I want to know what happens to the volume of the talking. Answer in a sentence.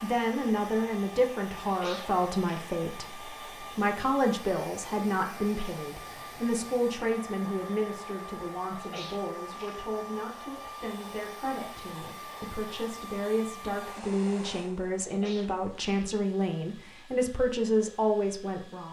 The volume of the talking goes down, then up.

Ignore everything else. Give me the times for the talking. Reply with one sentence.
You can hear the talking from 0.0 to 18.8 s.